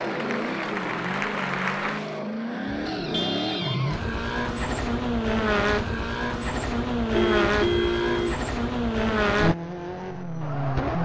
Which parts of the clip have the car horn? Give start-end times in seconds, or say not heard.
2.6-3.9, 7.1-8.4.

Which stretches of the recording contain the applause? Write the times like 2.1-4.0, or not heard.
0.0-2.2.